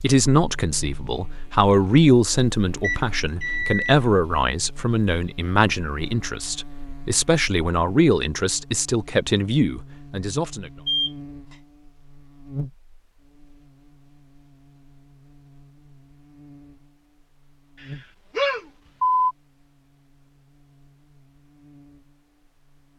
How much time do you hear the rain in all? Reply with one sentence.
The rain can't be heard in this clip.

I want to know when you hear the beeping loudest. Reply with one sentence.
The volume of the beeping peaks at 19 seconds.